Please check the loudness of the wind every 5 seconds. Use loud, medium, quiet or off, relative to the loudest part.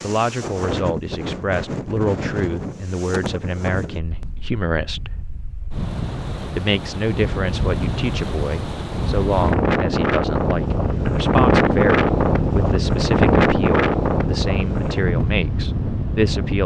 medium, medium, loud, medium.